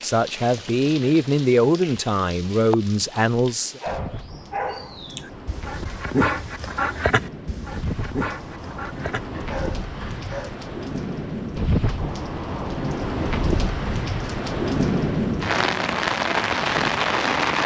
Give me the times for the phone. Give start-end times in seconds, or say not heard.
not heard.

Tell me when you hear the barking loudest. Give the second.
6 s.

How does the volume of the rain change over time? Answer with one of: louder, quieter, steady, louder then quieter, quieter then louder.
louder.